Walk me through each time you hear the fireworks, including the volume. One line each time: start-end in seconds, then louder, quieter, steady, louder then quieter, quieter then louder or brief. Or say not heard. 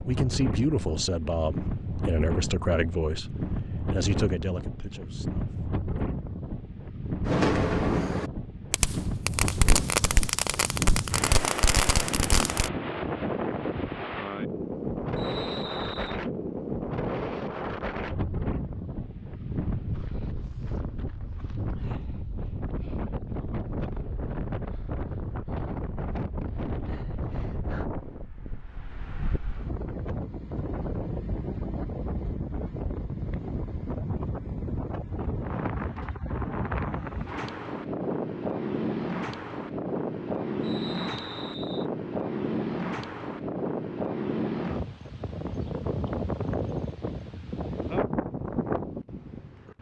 7.2-12.7 steady.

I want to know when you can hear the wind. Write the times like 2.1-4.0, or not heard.
0.0-49.7.